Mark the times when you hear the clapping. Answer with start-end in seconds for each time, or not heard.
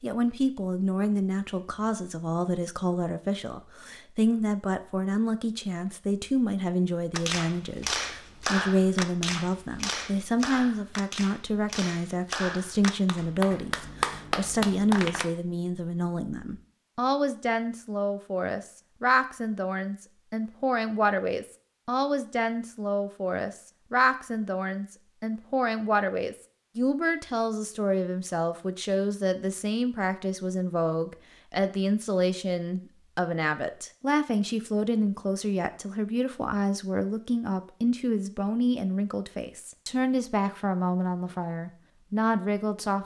7.1-15.2.